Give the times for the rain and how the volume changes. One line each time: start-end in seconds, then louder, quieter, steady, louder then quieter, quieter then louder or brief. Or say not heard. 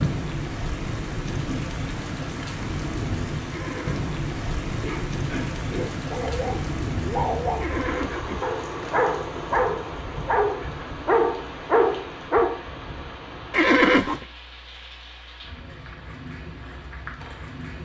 0.0-17.7 quieter.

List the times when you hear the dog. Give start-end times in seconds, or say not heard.
4.8-12.6.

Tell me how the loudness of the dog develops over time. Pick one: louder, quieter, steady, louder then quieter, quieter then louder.
louder.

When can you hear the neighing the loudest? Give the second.
14 s.